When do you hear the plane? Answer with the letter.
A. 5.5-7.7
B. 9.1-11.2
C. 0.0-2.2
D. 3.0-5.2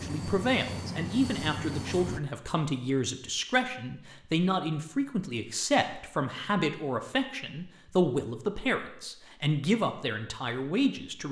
C.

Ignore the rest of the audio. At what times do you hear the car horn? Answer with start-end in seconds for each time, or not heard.
not heard.